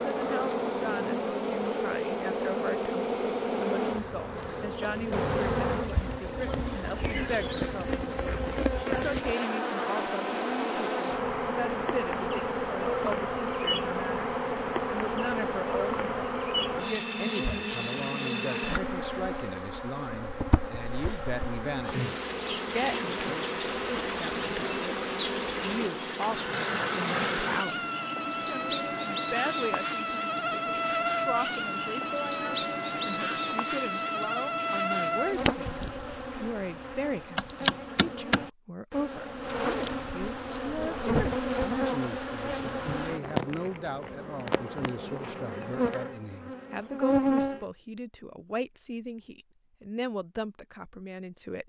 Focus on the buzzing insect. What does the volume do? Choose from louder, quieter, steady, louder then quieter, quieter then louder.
steady.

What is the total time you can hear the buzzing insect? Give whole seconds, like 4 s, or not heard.
48 s.